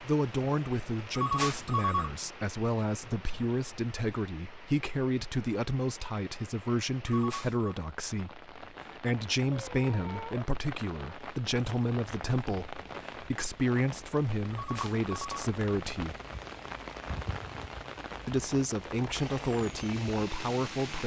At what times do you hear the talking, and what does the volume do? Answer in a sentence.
You can hear the talking from 0.0 to 16.1 s, at a steady volume; and briefly from 18.2 to 21.0 s.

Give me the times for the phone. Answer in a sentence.
The phone can be heard from 1.1 to 2.2 s, from 7.0 to 7.8 s and from 14.5 to 15.5 s.